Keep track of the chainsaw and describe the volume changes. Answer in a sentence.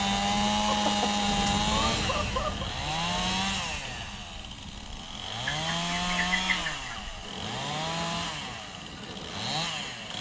The loudness of the chainsaw goes down.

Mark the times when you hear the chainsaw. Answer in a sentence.
You can hear the chainsaw from 0.0 to 10.1 s.